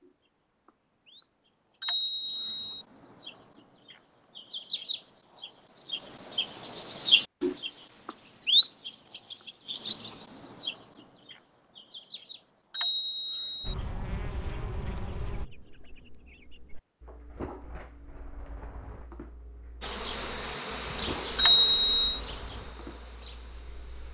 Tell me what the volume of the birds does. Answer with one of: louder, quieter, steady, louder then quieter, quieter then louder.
louder then quieter.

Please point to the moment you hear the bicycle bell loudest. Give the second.
22 s.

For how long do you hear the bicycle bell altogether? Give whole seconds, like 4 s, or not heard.
3 s.